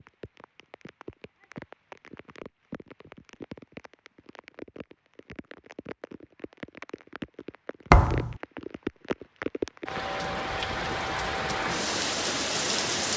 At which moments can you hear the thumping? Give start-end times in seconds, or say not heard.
7.9-8.3.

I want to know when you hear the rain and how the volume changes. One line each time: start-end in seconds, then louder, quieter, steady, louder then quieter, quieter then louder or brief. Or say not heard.
0.0-13.1 louder.